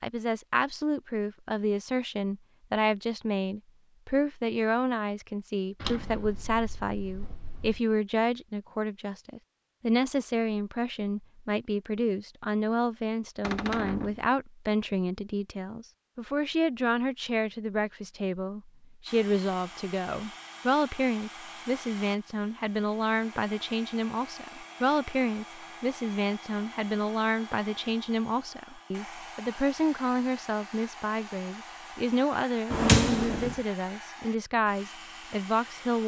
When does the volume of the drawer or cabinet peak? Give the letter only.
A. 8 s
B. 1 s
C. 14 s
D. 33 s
D.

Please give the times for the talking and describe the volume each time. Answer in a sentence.
The talking can be heard from 0.0 to 36.0 s, at a steady volume.